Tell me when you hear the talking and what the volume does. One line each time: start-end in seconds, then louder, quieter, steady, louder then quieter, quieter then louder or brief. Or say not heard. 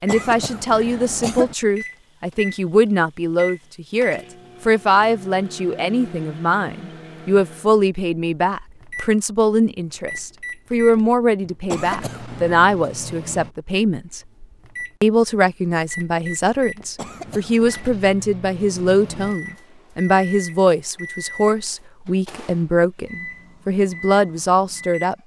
0.0-14.2 steady
15.0-25.2 steady.